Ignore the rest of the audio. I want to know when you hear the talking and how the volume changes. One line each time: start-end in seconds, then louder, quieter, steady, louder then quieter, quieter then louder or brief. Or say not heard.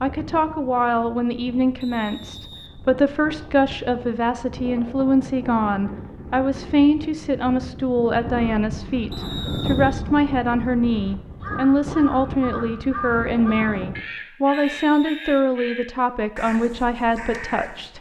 0.0-17.9 steady.